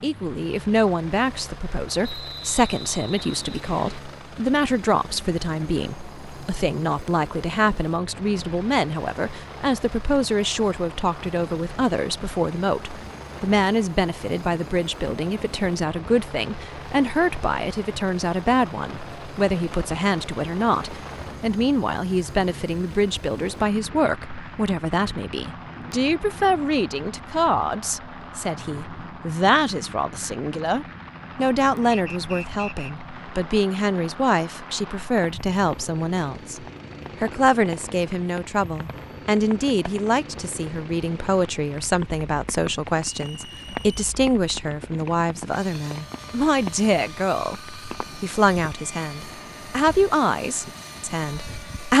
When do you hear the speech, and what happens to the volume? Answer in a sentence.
You can hear the speech from 0.0 to 51.9 s, at a steady volume.